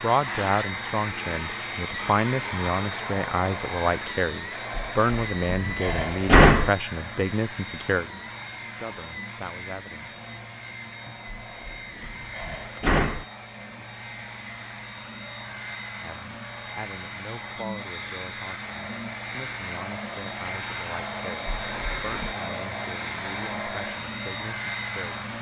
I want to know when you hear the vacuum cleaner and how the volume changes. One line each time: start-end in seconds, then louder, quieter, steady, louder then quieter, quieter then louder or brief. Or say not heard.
0.0-25.3 quieter then louder.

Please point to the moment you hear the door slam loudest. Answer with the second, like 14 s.
6 s.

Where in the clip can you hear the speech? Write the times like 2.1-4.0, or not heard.
0.0-10.1, 16.0-25.3.